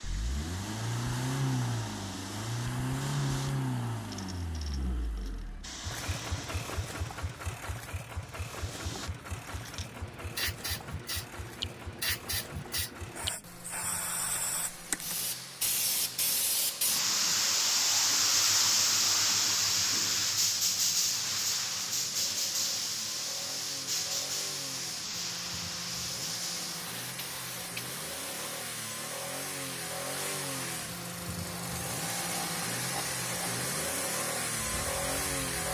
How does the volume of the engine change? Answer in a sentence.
The loudness of the engine goes down, then up.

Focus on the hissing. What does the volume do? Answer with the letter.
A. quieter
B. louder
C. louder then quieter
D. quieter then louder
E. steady
C.